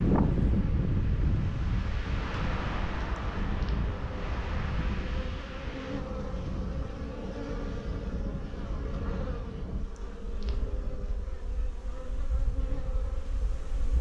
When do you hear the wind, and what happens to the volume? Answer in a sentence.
The wind can be heard from 0.0 to 13.9 s, getting quieter.